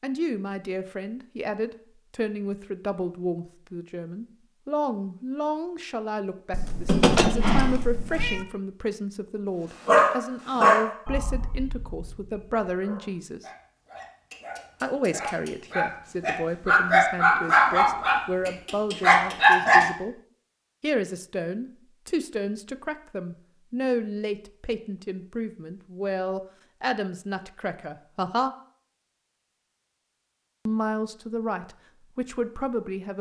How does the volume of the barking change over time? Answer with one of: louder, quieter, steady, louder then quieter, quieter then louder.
quieter then louder.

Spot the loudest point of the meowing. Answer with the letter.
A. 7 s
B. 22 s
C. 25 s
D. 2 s
A.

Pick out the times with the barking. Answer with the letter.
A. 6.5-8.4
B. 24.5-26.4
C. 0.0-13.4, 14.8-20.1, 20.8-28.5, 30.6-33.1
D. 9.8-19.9
D.